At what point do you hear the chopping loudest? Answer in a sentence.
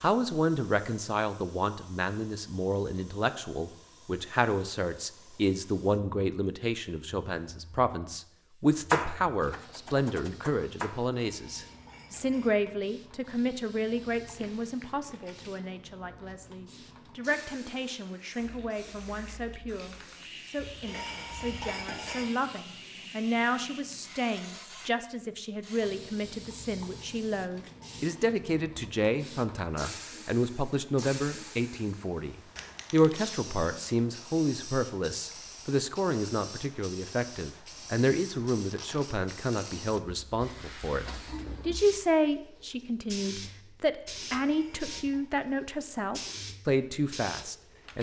The loudest moment of the chopping is at 9 seconds.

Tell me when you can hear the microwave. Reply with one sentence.
You can't hear the microwave here.